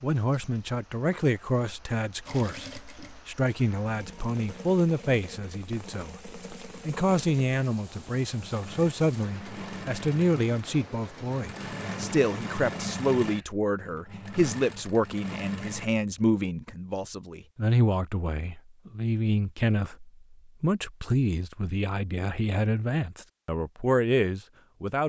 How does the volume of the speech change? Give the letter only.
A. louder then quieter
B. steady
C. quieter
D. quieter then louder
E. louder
B.